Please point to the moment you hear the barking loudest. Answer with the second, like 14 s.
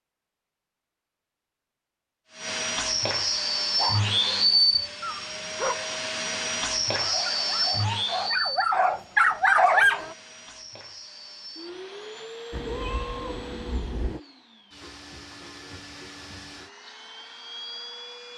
10 s.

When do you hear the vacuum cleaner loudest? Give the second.
4 s.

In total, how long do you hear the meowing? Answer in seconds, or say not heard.
2 s.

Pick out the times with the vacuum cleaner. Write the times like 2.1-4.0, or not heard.
2.3-18.3.